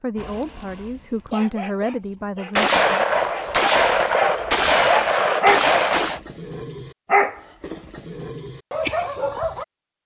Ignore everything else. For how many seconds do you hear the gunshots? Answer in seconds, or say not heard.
4 s.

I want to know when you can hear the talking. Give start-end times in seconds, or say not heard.
0.0-3.0.